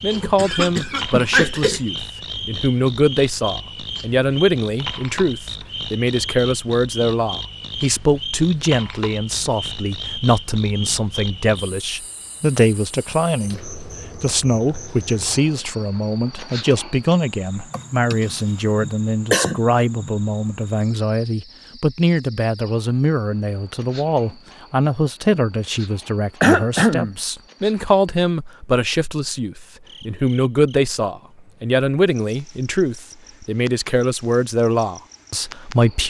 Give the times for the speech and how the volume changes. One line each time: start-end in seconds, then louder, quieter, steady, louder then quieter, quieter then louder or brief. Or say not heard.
0.0-36.0 steady.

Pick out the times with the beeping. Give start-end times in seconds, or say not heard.
not heard.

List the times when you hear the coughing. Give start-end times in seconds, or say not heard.
0.1-1.8, 17.7-20.1, 26.4-27.1.